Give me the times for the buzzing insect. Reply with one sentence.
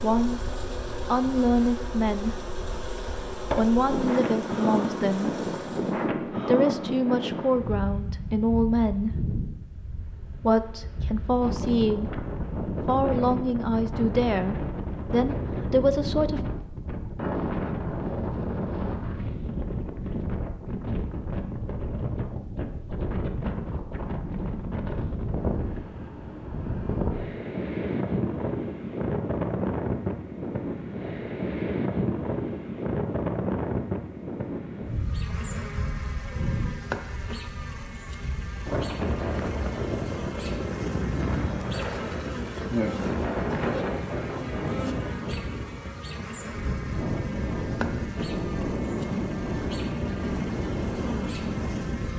The buzzing insect can be heard from 0.0 to 6.1 s and from 34.9 to 52.1 s.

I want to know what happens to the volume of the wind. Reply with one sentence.
The volume of the wind stays about the same.